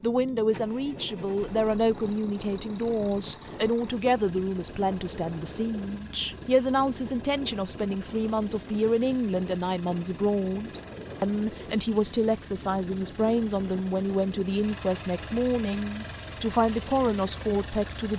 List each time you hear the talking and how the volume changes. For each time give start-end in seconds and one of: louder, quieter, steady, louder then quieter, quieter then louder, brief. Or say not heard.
0.0-18.1 steady.